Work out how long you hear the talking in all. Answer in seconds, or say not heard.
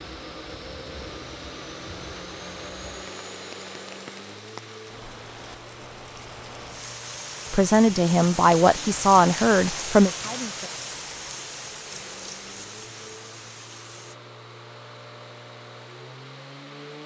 3 s.